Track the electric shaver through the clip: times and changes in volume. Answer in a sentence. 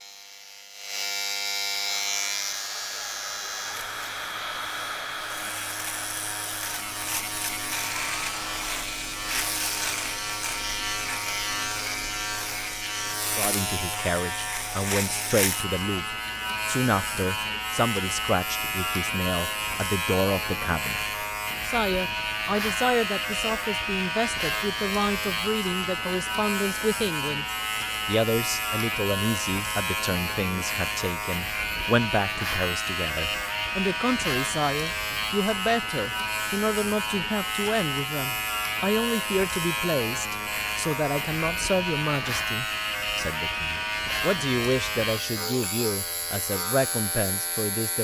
The electric shaver can be heard from 0.0 to 47.9 s, at a steady volume.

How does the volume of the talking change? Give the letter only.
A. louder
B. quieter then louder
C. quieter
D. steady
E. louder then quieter
D.